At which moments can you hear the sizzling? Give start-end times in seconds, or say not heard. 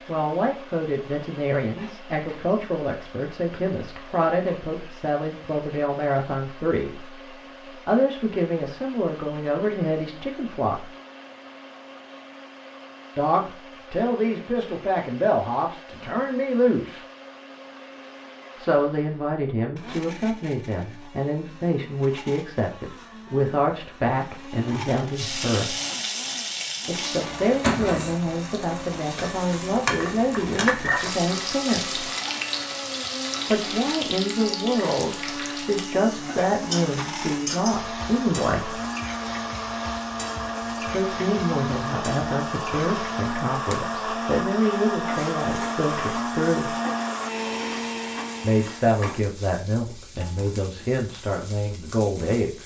25.1-52.6.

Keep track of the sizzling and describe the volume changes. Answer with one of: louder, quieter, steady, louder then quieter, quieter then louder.
quieter.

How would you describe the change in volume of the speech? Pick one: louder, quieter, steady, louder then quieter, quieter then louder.
steady.